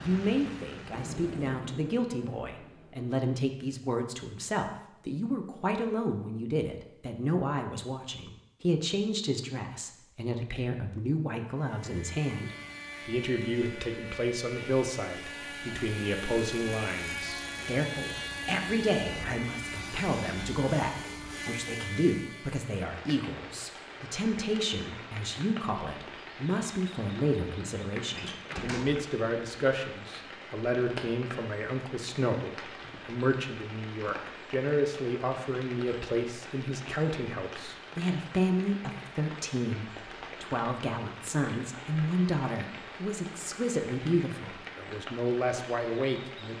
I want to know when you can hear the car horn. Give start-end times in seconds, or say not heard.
not heard.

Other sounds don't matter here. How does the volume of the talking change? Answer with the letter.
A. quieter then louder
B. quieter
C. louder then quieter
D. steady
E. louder
D.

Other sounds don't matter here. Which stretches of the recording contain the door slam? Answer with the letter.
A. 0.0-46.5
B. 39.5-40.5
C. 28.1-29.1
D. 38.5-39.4
C.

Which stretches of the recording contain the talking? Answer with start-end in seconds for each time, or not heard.
0.0-46.5.